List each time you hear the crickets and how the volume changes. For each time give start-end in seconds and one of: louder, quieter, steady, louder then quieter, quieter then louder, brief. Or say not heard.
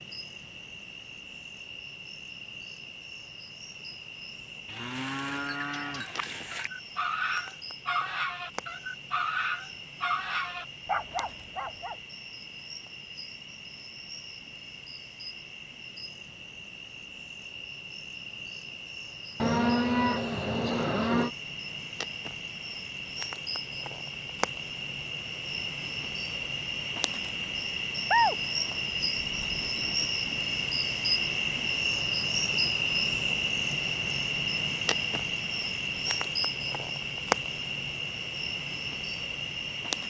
0.0-40.0 louder.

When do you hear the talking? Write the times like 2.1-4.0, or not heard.
not heard.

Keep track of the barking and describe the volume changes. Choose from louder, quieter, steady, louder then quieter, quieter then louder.
steady.